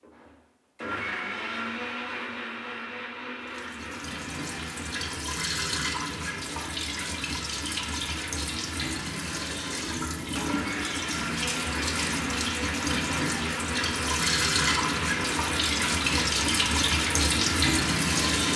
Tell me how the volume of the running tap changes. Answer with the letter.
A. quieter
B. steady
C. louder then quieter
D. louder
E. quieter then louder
D.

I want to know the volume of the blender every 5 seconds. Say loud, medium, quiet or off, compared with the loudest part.
loud, medium, loud, loud.